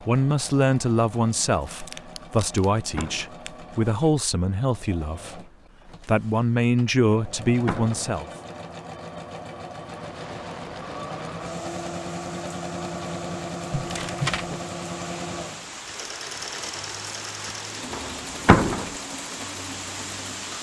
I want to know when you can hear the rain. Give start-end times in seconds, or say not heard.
9.8-20.5.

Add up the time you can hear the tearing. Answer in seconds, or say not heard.
3 s.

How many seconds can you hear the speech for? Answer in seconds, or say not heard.
8 s.